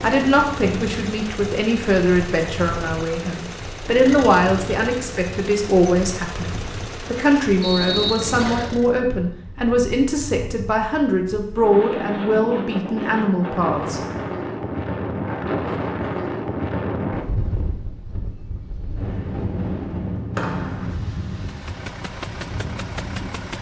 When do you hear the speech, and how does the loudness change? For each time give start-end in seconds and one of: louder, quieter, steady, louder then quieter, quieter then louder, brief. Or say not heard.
0.0-14.0 steady.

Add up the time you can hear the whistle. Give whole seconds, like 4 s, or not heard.
2 s.